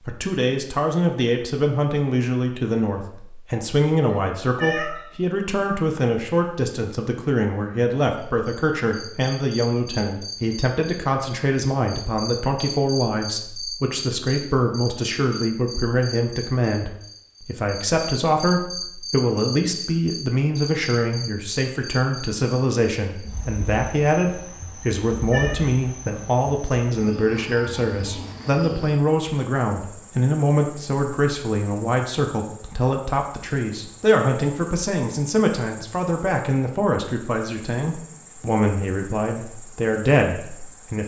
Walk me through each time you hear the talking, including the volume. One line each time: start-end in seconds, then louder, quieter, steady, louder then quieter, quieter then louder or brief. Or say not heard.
0.1-41.0 steady.